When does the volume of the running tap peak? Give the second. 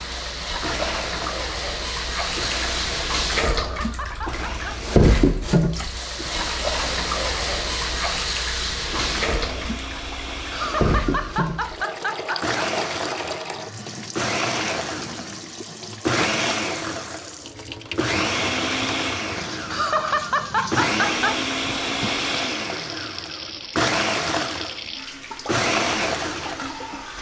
5 s.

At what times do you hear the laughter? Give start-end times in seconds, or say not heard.
3.4-4.9, 10.5-12.7, 19.6-21.4.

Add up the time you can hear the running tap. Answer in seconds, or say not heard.
27 s.